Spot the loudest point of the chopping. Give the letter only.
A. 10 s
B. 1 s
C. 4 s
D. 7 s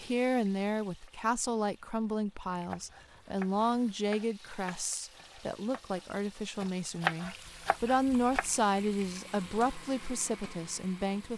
D.